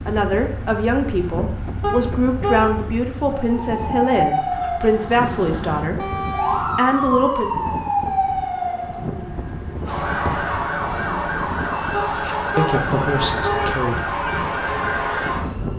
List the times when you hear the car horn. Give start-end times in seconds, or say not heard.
1.8-2.7, 6.0-6.7, 11.9-13.8.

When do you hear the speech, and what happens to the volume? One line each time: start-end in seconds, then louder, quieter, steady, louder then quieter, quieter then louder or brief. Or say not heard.
0.1-7.5 steady
12.2-14.2 brief.